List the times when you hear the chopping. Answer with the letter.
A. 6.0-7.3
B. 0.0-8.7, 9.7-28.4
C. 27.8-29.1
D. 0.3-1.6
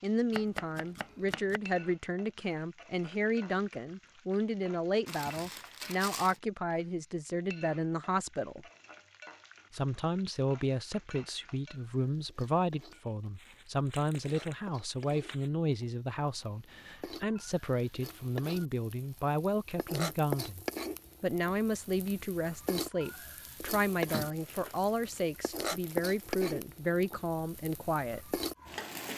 D.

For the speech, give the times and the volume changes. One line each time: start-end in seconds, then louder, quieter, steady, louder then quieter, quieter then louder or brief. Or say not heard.
0.0-8.7 steady
9.7-28.4 steady.